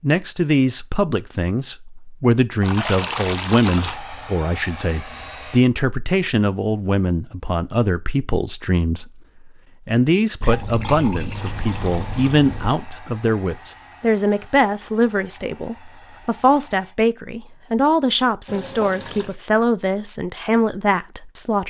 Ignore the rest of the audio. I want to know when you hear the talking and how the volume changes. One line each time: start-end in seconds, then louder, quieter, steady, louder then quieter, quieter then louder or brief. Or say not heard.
0.0-21.6 steady.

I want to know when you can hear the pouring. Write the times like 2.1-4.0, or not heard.
2.6-4.0, 10.4-12.8, 18.4-19.4.